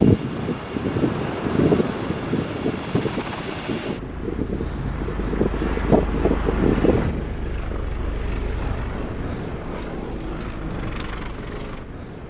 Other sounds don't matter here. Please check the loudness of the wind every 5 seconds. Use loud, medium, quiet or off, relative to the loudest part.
loud, loud, off.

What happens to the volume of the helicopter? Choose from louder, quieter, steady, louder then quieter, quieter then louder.
steady.